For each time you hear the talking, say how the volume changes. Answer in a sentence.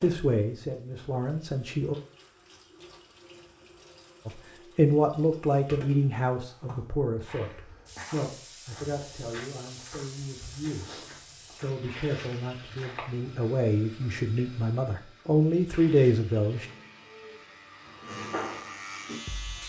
You can hear the talking briefly from 0.0 to 1.9 s; and from 4.2 to 16.6 s, getting quieter then louder.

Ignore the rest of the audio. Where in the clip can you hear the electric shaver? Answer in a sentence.
The electric shaver can be heard from 16.5 to 19.6 s.